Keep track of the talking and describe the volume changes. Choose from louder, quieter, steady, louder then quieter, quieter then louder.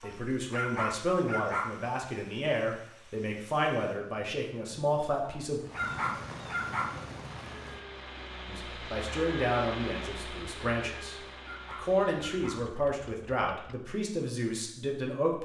steady.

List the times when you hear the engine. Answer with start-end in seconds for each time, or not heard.
6.9-13.8.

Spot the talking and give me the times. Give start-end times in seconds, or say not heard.
0.0-5.6, 8.4-15.3.